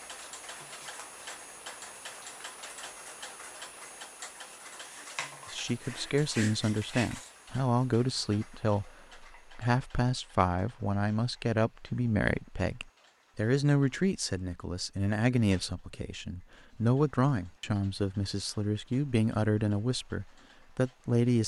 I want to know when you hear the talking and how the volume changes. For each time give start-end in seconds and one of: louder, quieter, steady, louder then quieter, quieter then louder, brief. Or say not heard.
5.5-21.4 steady.